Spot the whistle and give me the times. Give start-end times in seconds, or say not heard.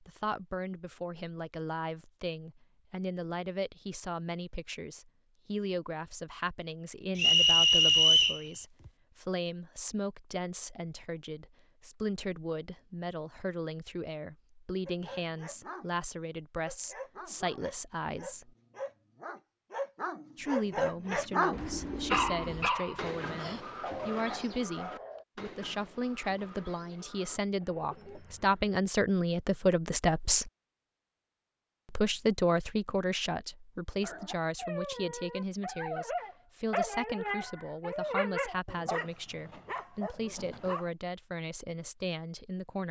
7.2-8.4.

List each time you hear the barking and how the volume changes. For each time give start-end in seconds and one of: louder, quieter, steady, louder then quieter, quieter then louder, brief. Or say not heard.
14.8-15.9 brief
16.6-25.2 louder then quieter
34.0-40.9 louder then quieter.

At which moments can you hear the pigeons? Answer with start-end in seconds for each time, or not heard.
21.1-28.8.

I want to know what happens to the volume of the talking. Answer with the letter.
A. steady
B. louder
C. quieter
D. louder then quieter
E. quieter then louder
D.